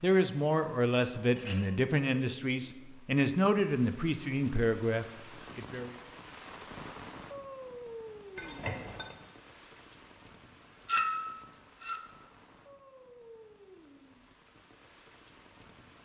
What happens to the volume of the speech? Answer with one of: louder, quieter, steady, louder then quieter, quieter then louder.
steady.